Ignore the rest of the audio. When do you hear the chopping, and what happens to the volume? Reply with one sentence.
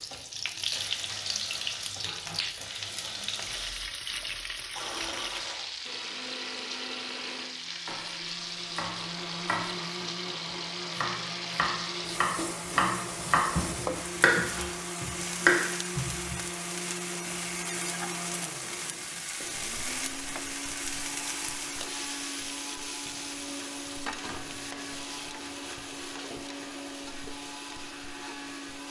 The chopping can be heard from 7.8 to 16.4 s, getting louder.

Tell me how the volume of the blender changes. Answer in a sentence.
The volume of the blender stays about the same.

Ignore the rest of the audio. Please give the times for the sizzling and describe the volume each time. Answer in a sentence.
You can hear the sizzling from 0.0 to 28.8 s, getting quieter.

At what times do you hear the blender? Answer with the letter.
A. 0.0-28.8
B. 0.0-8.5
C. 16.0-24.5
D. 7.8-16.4
A.